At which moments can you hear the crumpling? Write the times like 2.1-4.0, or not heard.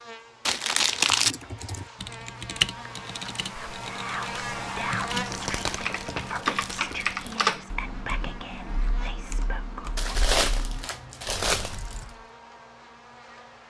0.5-1.4, 5.1-7.3, 9.9-12.0.